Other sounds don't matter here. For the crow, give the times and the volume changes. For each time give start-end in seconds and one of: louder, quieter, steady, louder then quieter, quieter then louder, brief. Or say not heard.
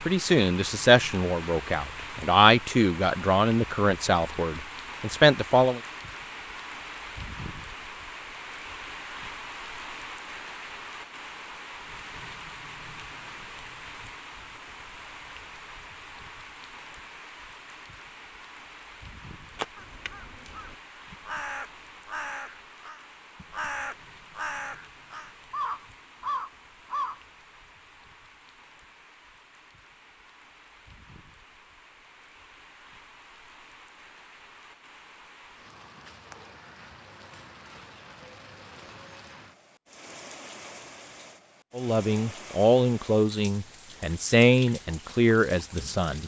19.5-27.2 louder.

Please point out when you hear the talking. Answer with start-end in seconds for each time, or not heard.
0.1-5.8, 41.8-46.2.